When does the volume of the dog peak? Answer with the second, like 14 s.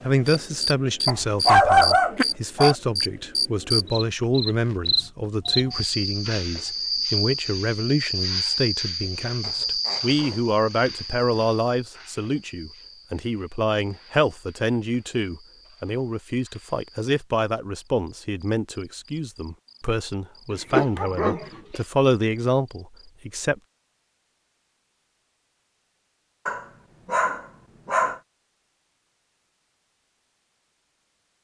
2 s.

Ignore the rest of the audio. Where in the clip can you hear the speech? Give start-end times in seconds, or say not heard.
0.0-23.6.